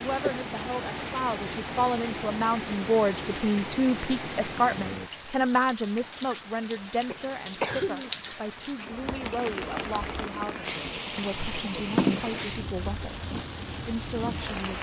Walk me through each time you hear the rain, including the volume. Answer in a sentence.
You can hear the rain from 0.0 to 14.7 s, at a steady volume.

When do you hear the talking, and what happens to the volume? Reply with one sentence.
You can hear the talking from 0.0 to 14.7 s, getting quieter.